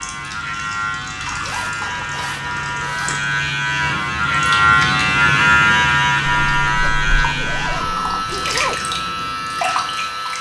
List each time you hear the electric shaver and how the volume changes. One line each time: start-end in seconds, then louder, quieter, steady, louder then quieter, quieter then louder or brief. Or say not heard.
0.0-10.3 louder then quieter.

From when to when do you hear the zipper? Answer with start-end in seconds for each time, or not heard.
1.4-3.4, 6.8-8.8.